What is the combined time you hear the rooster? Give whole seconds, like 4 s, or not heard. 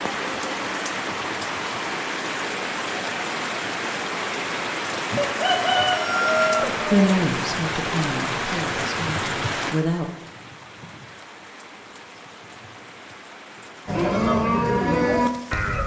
2 s.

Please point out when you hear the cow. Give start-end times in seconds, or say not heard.
13.8-15.8.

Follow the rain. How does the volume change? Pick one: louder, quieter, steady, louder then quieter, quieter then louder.
quieter.